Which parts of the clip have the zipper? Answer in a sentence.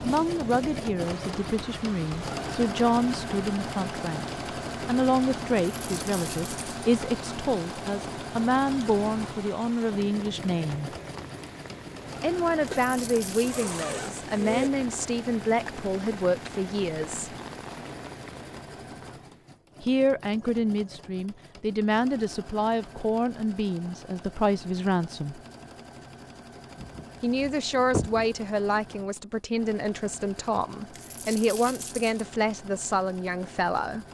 You can hear the zipper from 13.4 to 14.7 s and from 26.8 to 28.3 s.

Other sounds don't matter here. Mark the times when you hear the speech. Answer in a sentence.
The speech can be heard from 0.0 to 10.9 s, from 12.2 to 17.4 s, from 19.8 to 25.4 s and from 27.2 to 34.0 s.